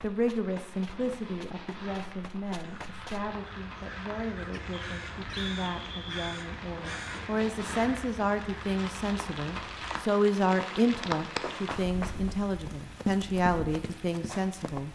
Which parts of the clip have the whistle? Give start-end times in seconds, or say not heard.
4.7-6.4.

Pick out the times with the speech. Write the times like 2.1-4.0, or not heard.
0.0-14.8.